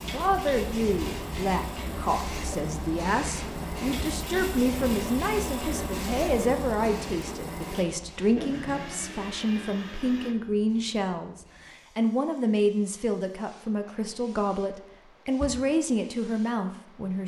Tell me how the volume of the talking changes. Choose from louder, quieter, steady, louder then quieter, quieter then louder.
steady.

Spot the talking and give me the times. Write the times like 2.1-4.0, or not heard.
0.0-17.2.